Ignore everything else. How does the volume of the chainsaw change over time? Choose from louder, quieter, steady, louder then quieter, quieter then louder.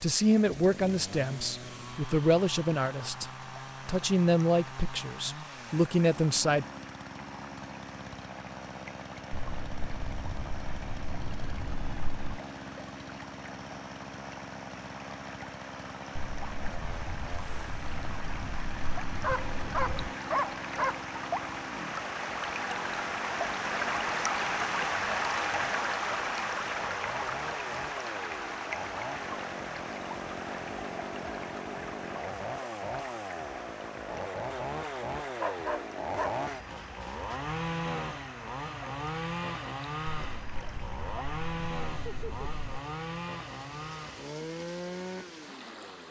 louder.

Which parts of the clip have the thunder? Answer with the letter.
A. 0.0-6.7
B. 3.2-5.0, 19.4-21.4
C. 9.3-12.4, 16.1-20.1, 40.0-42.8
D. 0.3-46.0
C.